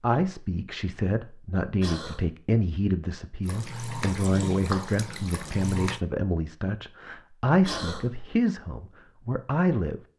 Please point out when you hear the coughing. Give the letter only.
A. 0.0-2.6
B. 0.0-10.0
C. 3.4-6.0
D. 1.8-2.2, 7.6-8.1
D.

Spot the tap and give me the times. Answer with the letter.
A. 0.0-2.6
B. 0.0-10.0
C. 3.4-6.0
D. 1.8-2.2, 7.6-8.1
C.